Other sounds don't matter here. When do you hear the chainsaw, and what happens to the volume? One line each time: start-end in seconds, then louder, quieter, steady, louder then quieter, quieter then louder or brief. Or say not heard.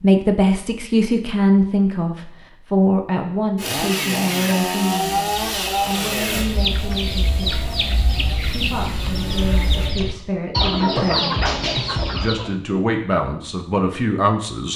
3.5-9.9 quieter.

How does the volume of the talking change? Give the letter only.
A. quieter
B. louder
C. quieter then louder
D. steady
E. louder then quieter
C.